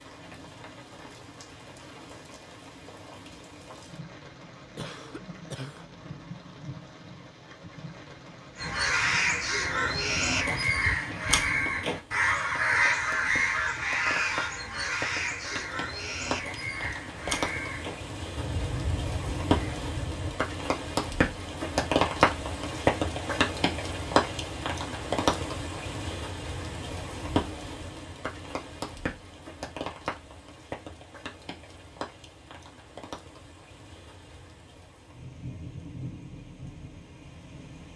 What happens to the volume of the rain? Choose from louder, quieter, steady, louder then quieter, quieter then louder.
louder then quieter.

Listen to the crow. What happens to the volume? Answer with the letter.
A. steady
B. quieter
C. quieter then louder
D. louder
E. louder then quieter
B.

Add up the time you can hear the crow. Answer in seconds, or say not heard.
12 s.